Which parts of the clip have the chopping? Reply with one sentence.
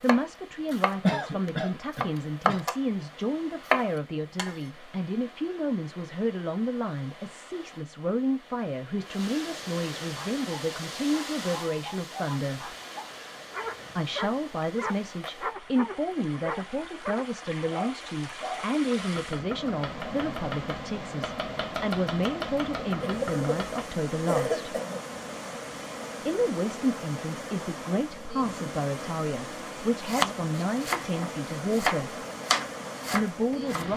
The chopping can be heard from 0.1 to 2.8 s, from 3.6 to 4.6 s, from 18.9 to 23.9 s and from 30.1 to 33.9 s.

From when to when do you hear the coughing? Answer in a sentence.
The coughing can be heard from 1.0 to 2.6 s and from 23.0 to 25.0 s.